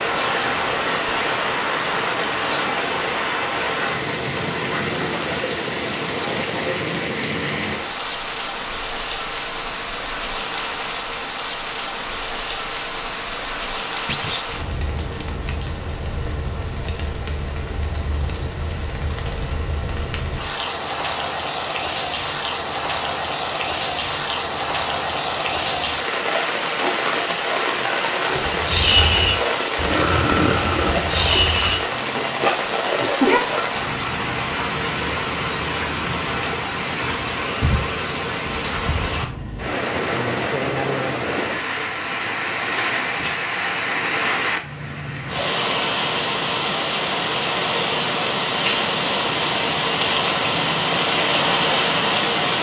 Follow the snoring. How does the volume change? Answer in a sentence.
The volume of the snoring goes down.